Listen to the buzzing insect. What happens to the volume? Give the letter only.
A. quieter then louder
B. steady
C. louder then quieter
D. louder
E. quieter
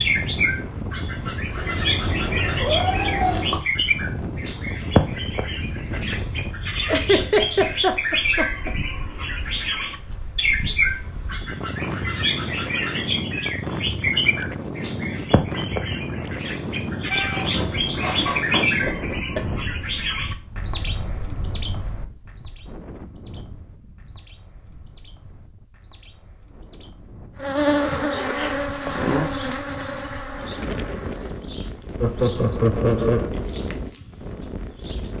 E.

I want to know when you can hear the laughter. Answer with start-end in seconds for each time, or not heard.
6.8-8.8, 18.6-19.4, 32.0-33.3.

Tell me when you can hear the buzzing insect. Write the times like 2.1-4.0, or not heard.
27.4-31.4.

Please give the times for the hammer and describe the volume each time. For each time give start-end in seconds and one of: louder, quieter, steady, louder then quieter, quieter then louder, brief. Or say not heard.
not heard.